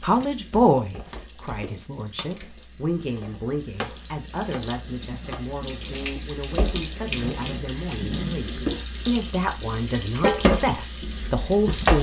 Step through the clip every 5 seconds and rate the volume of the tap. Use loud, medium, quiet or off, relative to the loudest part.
quiet, medium, loud.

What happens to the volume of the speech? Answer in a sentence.
The volume of the speech goes down, then up.